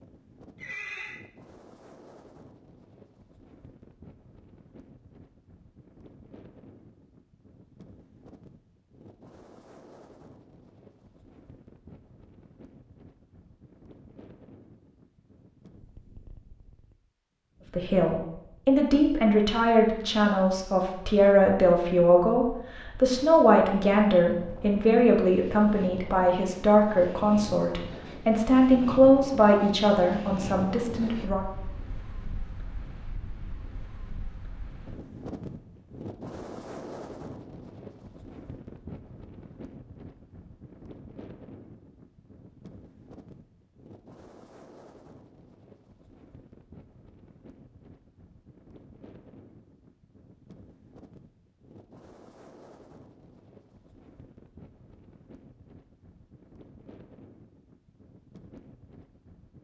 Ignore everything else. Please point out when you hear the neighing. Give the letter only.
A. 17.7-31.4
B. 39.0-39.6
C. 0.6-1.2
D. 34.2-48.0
C.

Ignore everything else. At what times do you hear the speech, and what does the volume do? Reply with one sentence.
The speech can be heard from 17.7 to 31.4 s, at a steady volume.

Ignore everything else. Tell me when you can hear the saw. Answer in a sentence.
You can't hear the saw here.